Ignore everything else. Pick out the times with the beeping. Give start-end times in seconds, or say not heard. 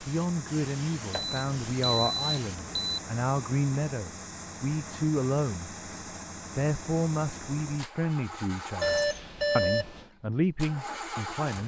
1.1-3.0, 8.8-10.1.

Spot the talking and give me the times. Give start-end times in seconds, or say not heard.
0.0-5.8, 6.5-11.6.